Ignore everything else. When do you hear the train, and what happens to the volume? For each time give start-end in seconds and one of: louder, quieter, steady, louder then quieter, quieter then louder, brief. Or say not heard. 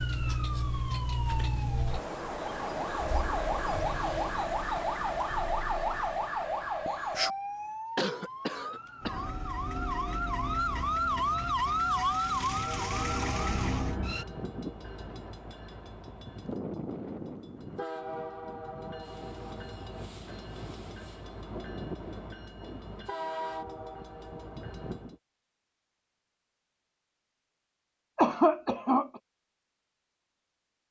12.5-25.2 steady.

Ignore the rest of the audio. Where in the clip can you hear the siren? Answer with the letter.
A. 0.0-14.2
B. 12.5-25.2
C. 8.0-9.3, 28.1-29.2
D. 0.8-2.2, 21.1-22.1
A.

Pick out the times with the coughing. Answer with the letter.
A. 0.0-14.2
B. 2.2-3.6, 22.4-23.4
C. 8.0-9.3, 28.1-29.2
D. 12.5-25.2
C.